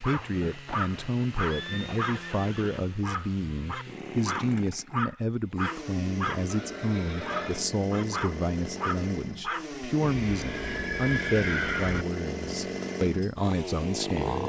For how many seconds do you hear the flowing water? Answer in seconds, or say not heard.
not heard.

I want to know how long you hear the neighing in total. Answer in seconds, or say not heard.
6 s.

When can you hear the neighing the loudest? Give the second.
12 s.